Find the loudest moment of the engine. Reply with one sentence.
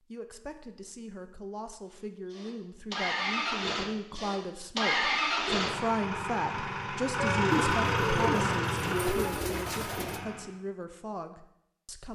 The loudest moment of the engine is at 8 seconds.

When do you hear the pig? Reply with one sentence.
You can't hear the pig here.